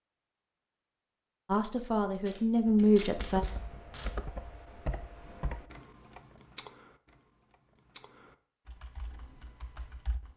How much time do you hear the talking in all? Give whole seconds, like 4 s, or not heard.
2 s.